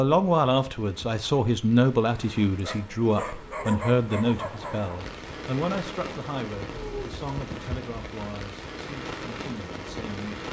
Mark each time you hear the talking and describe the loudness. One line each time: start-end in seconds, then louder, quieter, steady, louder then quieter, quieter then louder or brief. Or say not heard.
0.0-10.4 quieter.